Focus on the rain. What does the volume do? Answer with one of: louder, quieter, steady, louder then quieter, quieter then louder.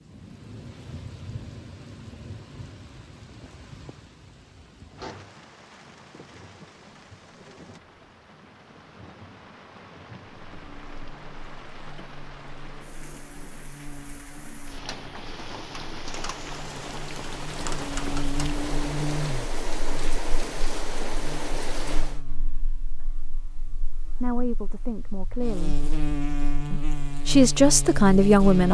louder.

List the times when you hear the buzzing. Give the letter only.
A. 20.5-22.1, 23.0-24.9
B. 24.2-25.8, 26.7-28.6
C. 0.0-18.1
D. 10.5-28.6
D.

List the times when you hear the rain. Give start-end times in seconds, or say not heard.
0.0-22.2.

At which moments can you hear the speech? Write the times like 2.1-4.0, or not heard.
24.2-25.8, 26.7-28.6.